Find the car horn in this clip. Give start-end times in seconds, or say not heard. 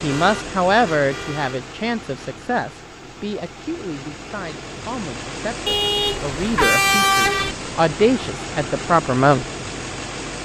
0.1-1.6, 5.7-7.5.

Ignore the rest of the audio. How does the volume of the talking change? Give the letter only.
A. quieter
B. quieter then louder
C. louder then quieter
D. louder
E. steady
B.